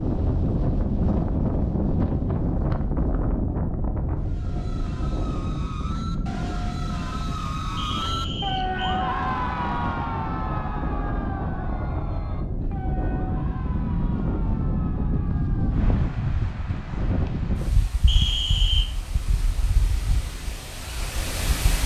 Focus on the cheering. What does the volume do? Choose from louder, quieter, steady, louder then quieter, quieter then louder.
louder then quieter.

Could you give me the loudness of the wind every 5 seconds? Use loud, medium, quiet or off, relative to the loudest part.
loud, medium, loud, loud, medium.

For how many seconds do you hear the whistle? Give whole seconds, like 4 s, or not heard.
2 s.